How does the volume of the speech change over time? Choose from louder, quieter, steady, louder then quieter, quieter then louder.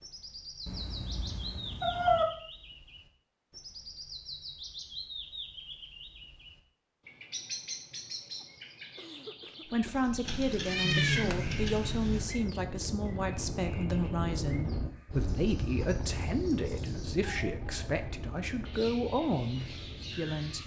steady.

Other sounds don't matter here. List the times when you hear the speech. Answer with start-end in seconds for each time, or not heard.
9.7-20.6.